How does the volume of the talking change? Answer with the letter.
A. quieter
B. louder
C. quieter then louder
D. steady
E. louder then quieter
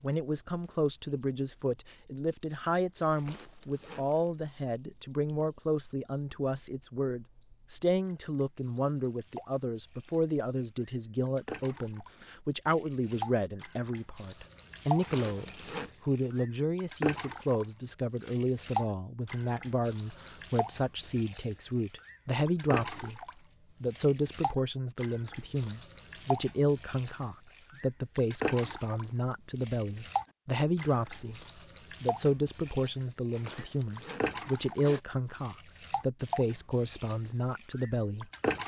D.